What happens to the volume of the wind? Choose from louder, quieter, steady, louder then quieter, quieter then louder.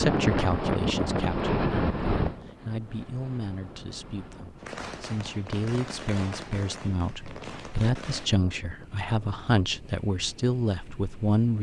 quieter.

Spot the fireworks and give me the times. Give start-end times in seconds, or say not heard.
4.5-8.3.